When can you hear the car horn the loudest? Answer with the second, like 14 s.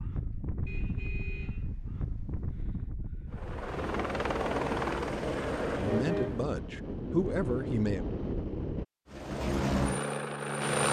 6 s.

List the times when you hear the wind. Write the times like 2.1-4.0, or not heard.
0.0-8.8.